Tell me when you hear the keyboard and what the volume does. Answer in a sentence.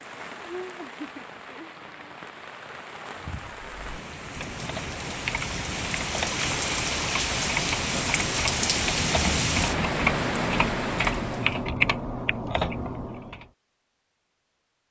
You can hear the keyboard from 3.6 to 13.4 s, getting louder.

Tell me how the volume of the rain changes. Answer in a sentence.
The loudness of the rain goes up.